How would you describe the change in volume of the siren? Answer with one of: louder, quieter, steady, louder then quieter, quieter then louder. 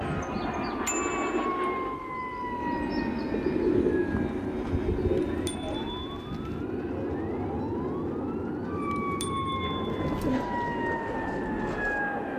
quieter then louder.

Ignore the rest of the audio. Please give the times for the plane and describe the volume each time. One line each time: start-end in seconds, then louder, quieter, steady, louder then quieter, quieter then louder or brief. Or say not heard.
0.0-12.3 steady.